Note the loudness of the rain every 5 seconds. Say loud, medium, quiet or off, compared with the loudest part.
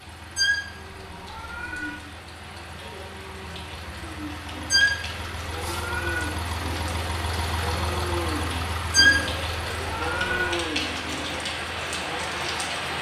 quiet, medium, loud.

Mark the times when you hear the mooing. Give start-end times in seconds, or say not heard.
0.7-12.6.